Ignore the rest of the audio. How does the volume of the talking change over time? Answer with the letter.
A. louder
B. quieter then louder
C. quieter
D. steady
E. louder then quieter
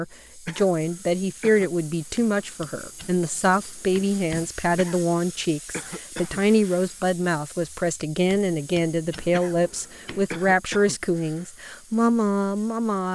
D.